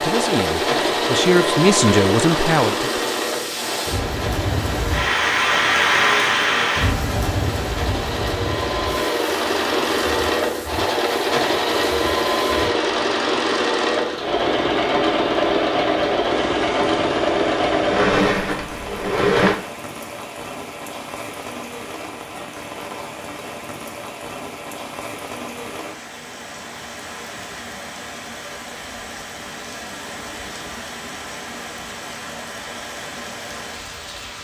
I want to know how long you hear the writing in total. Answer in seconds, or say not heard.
not heard.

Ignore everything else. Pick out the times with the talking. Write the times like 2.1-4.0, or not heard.
0.0-3.1.